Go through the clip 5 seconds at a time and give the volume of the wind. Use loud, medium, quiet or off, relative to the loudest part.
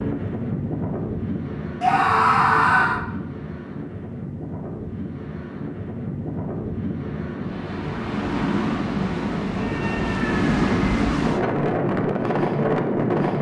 medium, medium, loud.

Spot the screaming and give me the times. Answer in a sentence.
You can hear the screaming from 1.8 to 3.0 s and from 9.5 to 10.8 s.